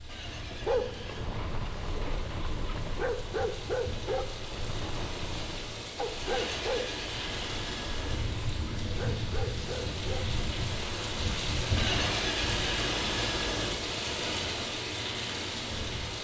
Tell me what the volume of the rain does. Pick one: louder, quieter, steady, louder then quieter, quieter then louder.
louder.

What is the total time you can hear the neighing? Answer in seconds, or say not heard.
5 s.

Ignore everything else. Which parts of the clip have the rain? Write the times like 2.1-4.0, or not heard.
0.0-16.1.